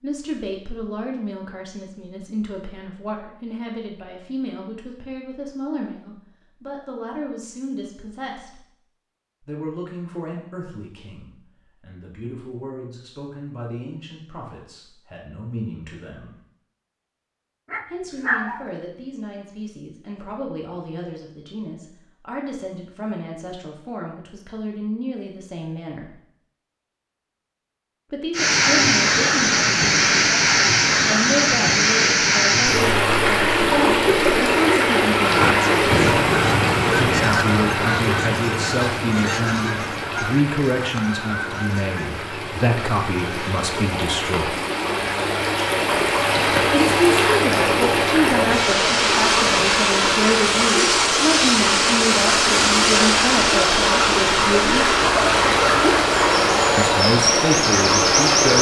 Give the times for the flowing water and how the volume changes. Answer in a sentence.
You can hear the flowing water from 28.3 to 58.5 s, getting quieter then louder.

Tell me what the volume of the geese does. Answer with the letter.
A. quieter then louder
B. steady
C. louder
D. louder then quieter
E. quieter
E.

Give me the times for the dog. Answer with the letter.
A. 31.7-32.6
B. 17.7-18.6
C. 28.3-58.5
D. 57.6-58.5
B.